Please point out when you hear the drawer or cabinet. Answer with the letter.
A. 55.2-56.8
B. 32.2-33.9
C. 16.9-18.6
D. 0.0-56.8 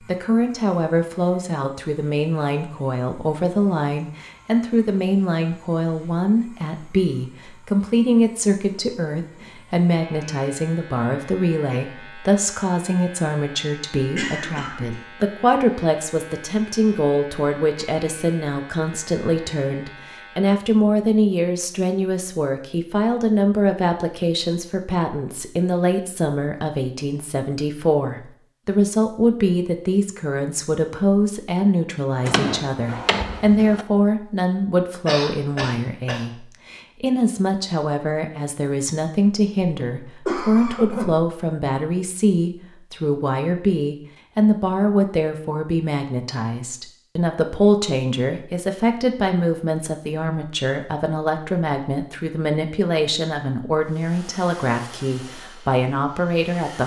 B.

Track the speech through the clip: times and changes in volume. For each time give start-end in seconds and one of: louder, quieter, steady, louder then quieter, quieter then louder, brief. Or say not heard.
0.0-56.8 steady.